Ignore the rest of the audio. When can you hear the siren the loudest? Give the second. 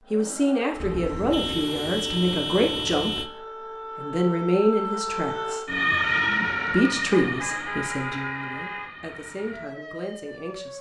6 s.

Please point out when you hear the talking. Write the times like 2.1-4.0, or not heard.
0.1-5.8, 6.7-10.7.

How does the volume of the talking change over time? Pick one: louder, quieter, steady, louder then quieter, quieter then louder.
quieter.